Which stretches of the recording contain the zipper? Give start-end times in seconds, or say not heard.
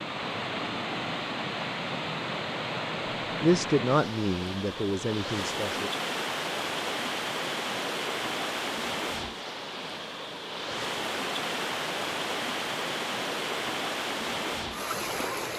not heard.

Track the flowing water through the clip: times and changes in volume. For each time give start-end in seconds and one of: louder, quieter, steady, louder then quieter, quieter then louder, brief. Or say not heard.
0.0-15.5 steady.